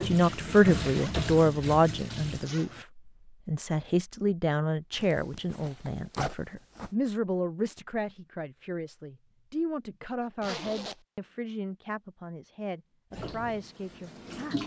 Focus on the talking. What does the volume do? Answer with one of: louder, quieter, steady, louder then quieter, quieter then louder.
quieter.